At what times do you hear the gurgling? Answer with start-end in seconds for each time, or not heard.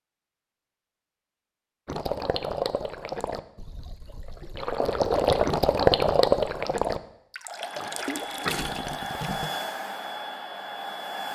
1.9-9.5.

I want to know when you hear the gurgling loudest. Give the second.
6 s.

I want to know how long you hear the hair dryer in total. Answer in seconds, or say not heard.
4 s.